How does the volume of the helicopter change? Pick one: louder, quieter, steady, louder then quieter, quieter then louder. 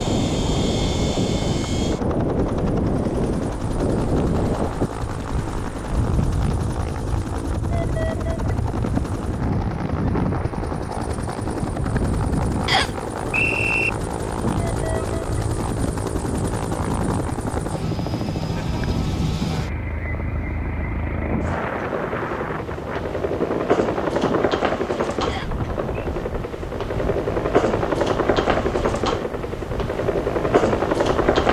louder.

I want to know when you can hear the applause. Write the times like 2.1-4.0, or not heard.
not heard.